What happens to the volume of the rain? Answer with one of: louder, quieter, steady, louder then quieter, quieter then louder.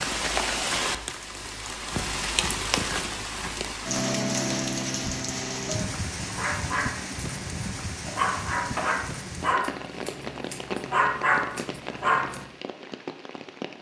quieter.